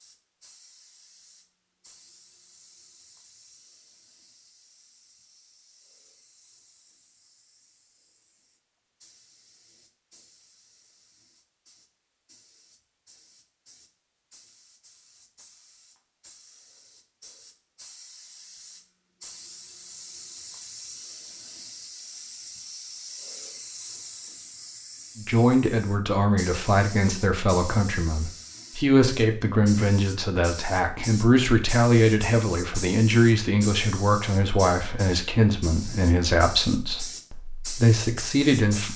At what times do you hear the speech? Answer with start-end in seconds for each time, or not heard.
25.1-38.9.